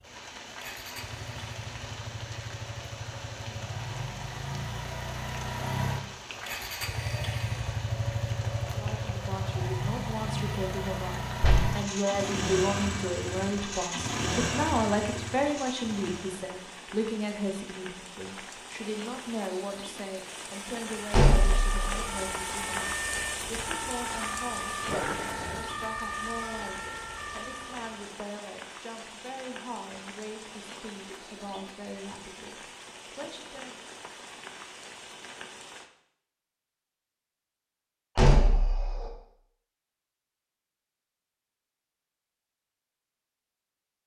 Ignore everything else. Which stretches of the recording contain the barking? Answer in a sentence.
You can hear the barking from 24.9 to 25.8 s.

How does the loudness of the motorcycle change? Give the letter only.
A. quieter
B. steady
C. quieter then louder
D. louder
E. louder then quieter
D.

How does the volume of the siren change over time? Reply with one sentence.
The loudness of the siren stays about the same.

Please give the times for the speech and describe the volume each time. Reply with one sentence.
The speech can be heard from 8.7 to 33.9 s, getting quieter.